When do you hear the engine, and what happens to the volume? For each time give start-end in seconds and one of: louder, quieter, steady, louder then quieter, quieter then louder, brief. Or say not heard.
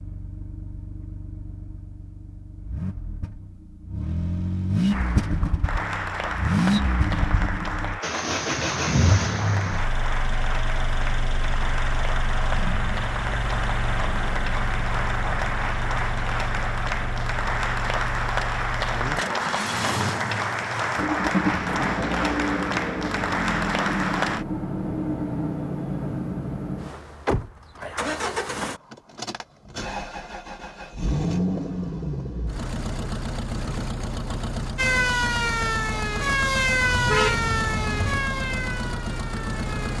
0.0-39.9 steady.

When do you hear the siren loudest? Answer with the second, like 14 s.
37 s.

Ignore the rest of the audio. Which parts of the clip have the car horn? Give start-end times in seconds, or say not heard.
36.9-38.2.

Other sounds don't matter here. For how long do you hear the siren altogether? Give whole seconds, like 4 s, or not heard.
5 s.